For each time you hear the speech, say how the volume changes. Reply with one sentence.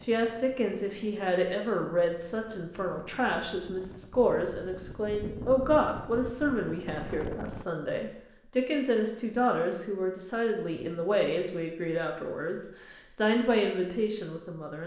The speech can be heard from 0.0 to 14.8 s, at a steady volume.